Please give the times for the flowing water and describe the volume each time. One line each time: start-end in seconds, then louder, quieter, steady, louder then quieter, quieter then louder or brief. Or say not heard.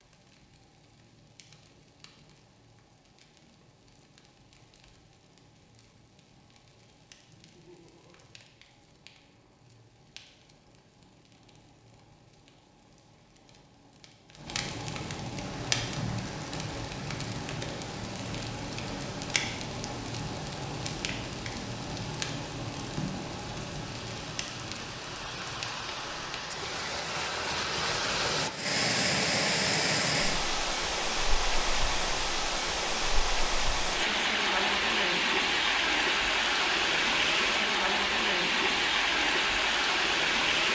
15.3-40.6 louder.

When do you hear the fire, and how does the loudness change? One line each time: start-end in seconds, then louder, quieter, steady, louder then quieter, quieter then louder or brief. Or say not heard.
0.0-26.6 louder.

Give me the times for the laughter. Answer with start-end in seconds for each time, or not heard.
7.2-8.2.